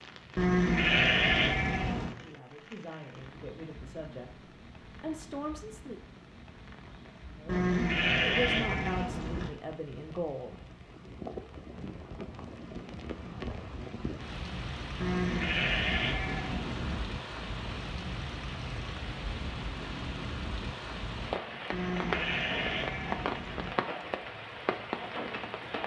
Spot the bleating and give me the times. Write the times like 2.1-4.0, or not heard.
0.3-2.1, 7.5-9.5, 15.0-17.0, 21.7-23.8.